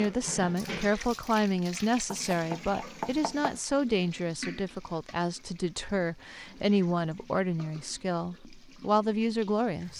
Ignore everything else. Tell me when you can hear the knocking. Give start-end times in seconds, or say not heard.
2.0-3.6.